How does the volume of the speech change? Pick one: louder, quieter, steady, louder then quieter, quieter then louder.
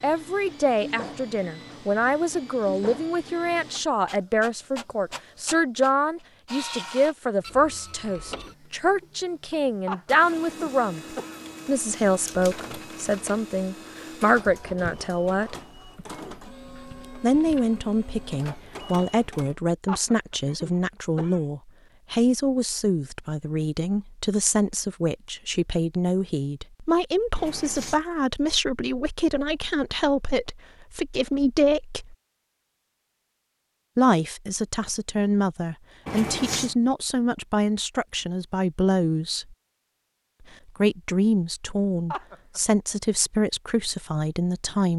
steady.